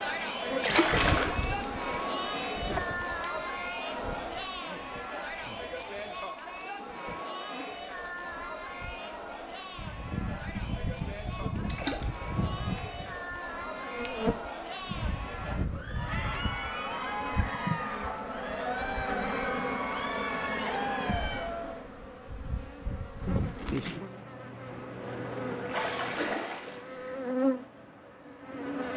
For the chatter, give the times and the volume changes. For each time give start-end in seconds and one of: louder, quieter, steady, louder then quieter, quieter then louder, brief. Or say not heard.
0.0-21.9 quieter then louder.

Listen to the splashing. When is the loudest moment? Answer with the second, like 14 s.
1 s.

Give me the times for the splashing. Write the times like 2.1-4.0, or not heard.
0.6-1.4, 11.7-12.1, 25.6-27.1.